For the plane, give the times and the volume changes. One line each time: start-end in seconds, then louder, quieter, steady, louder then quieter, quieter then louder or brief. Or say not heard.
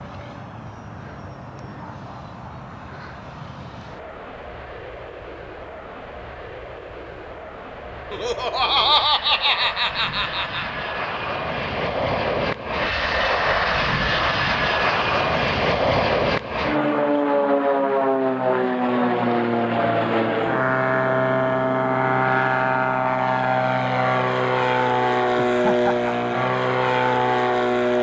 0.0-27.9 louder.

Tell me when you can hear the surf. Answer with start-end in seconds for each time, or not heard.
not heard.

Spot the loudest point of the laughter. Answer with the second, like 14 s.
9 s.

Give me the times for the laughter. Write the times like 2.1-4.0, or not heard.
8.1-10.7, 25.4-26.1.